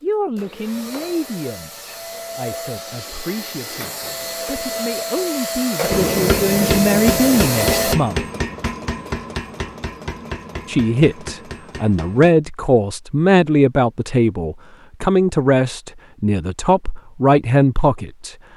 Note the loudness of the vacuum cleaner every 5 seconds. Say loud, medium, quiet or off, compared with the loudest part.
medium, loud, off, off.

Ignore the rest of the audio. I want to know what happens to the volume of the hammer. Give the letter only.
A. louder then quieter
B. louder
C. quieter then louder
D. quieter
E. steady
D.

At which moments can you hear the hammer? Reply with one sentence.
You can hear the hammer from 5.9 to 12.3 s.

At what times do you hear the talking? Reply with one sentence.
The talking can be heard from 0.0 to 8.2 s and from 10.7 to 18.4 s.